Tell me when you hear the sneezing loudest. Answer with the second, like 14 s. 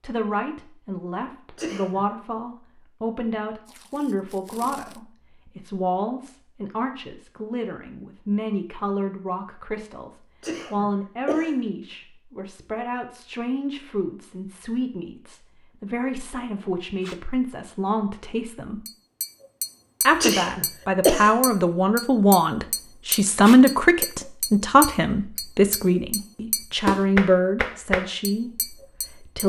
21 s.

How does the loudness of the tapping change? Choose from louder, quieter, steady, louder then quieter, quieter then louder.
louder.